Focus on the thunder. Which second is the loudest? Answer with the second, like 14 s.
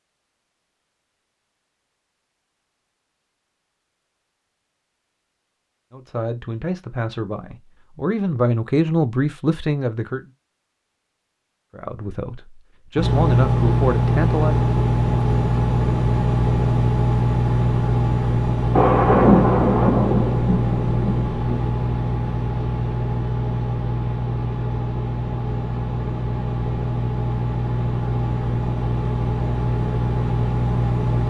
19 s.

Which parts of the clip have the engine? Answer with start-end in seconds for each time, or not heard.
12.9-31.2.